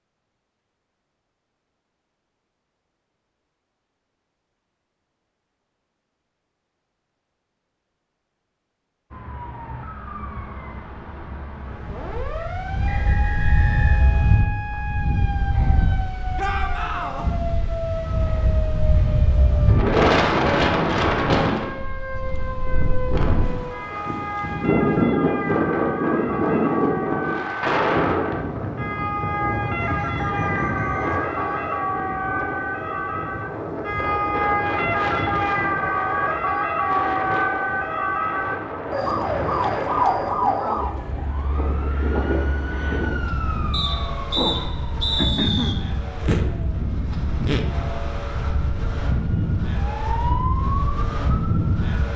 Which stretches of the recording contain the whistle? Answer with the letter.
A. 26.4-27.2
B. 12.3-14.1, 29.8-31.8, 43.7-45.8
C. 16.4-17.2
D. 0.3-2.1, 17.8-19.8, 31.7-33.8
B.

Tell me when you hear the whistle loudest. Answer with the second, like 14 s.
45 s.